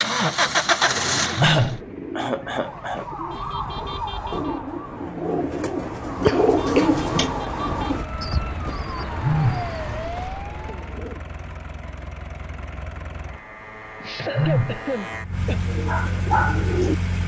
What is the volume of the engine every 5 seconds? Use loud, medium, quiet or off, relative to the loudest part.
loud, quiet, quiet, medium.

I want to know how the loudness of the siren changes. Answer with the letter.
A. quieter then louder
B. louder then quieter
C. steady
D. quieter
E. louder
A.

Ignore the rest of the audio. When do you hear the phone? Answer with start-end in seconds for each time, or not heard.
1.4-1.9, 9.2-9.7, 14.3-14.8.